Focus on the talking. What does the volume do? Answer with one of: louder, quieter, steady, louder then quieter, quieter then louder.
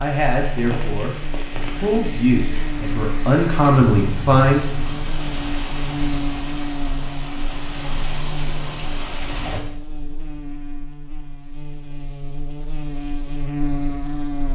louder.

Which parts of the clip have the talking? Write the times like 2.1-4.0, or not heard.
0.0-4.8.